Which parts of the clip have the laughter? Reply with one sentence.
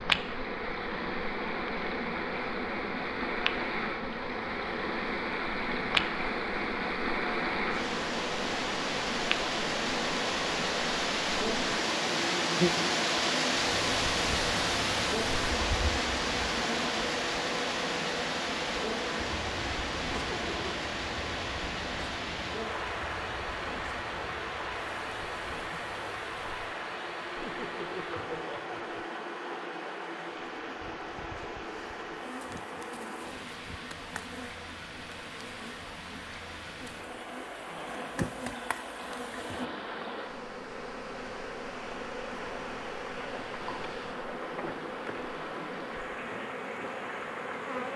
The laughter can be heard from 20.1 to 20.9 s and from 27.4 to 29.1 s.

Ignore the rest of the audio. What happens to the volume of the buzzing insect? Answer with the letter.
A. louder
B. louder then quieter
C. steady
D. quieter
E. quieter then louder
E.